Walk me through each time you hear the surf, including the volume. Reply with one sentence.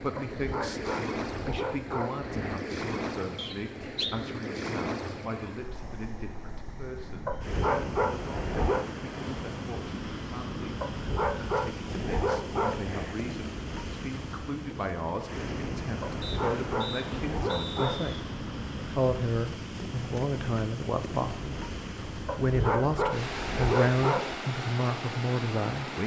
You can hear the surf from 0.0 to 26.0 s, at a steady volume.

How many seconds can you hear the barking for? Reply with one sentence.
The barking can be heard for 11 seconds in total.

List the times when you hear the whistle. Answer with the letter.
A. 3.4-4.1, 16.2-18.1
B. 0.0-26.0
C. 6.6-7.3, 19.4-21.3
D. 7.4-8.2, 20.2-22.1
A.